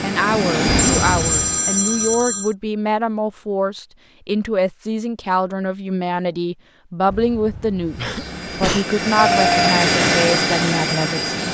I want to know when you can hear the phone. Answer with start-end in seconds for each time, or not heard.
0.8-2.5, 9.2-9.8.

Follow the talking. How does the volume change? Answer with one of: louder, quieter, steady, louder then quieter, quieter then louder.
steady.